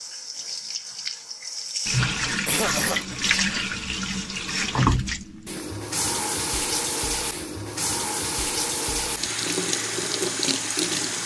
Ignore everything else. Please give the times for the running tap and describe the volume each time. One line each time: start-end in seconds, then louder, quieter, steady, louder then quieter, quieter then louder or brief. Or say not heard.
0.0-11.2 steady.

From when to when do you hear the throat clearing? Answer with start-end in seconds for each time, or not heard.
2.5-3.1.